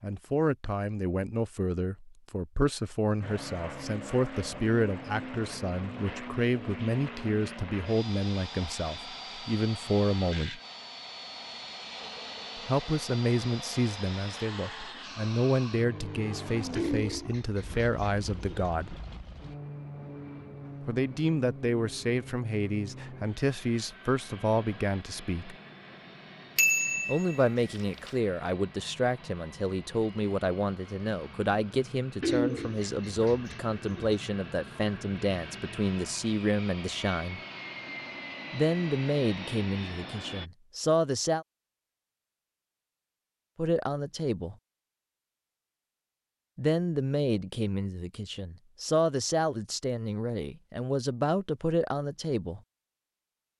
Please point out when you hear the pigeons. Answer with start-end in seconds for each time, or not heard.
16.8-18.7, 32.2-34.1.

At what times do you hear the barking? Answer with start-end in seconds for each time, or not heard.
not heard.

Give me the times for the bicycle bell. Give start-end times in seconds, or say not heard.
26.6-28.1.